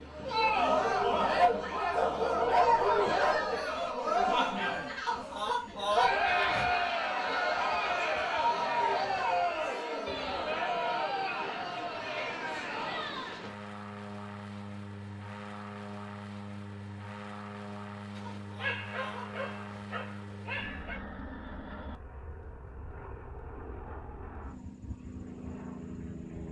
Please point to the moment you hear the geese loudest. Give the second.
6 s.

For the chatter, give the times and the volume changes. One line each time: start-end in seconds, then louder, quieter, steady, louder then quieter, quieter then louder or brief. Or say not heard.
0.1-13.5 quieter.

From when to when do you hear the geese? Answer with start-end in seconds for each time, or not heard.
5.0-6.7, 18.2-19.9.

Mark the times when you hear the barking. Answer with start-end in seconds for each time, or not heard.
1.4-3.4, 18.1-21.0.